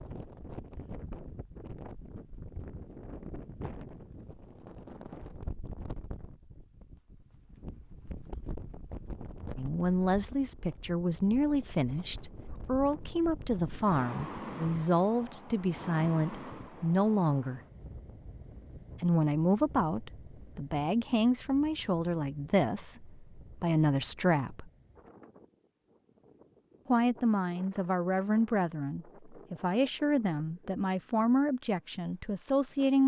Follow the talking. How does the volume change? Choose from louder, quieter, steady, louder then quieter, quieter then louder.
steady.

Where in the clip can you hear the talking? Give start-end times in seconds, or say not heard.
9.6-17.6, 19.0-24.7, 26.9-33.0.